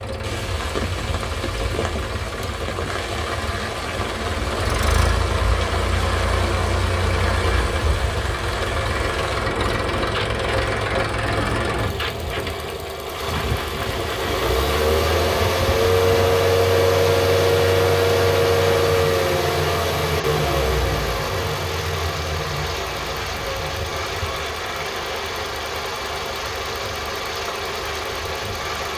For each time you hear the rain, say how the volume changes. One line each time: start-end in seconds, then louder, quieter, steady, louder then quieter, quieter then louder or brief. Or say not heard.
0.0-28.9 steady.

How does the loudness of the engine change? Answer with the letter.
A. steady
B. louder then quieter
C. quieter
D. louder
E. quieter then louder
B.